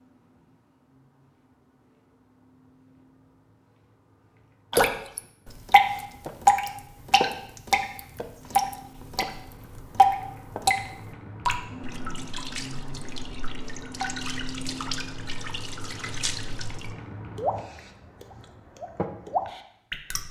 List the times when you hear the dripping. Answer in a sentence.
You can hear the dripping from 4.7 to 20.2 s.